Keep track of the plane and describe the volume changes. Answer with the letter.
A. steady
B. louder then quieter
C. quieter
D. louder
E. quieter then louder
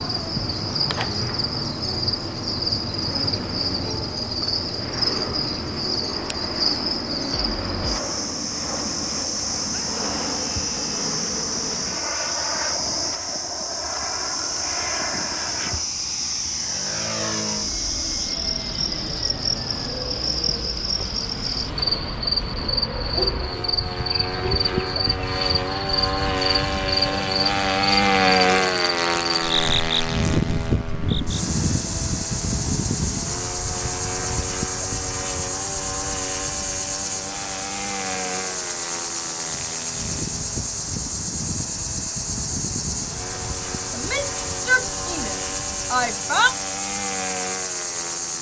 B.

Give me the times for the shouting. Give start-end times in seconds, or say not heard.
9.7-11.2, 44.0-46.5.